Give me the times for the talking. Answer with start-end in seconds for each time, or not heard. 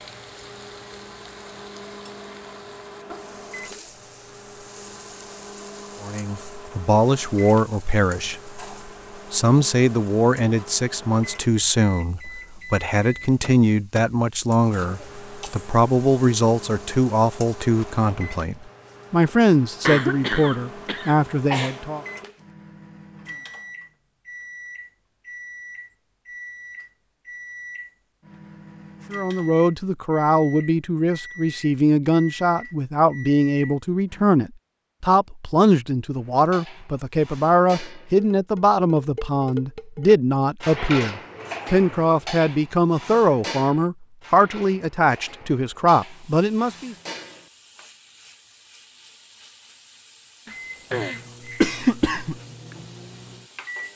6.0-8.6, 9.3-22.1, 29.1-47.0.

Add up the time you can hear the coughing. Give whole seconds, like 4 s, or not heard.
4 s.